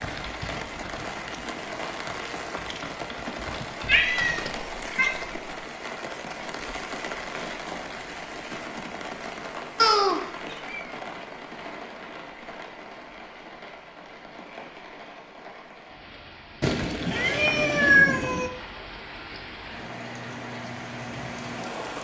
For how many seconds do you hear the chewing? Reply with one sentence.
The chewing can't be heard in this clip.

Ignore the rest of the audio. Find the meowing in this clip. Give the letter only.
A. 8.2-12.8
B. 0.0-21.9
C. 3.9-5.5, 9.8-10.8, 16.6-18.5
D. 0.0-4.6
C.